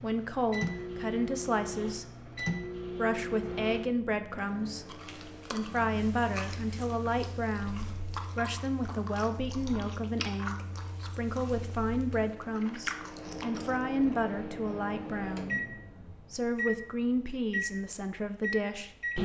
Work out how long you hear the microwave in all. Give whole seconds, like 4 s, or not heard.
19 s.